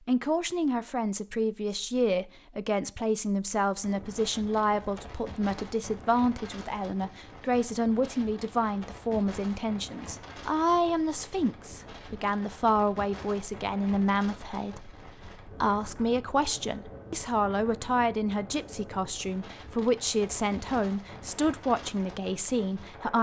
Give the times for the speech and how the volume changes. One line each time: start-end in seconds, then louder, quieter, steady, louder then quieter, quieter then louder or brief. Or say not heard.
0.1-23.1 steady.